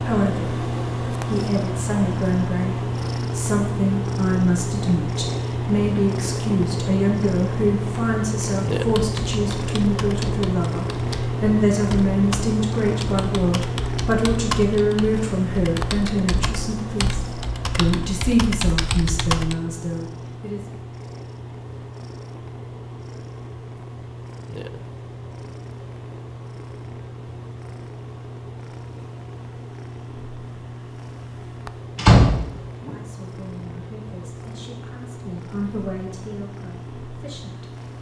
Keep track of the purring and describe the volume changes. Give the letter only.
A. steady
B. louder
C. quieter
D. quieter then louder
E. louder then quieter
C.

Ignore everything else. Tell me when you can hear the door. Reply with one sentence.
The door can be heard from 31.9 to 32.9 s.